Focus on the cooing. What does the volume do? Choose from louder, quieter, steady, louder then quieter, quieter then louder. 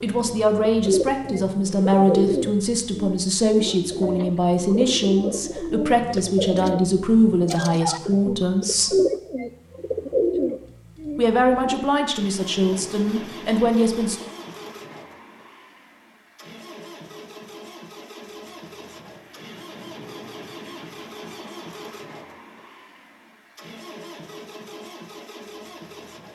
quieter then louder.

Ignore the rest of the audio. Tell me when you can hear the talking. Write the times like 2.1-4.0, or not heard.
0.0-8.9, 11.2-14.2.